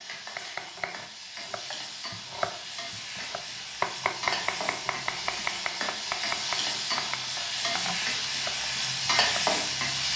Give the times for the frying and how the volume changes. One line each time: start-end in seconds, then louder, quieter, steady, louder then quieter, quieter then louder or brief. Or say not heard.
0.0-10.1 louder.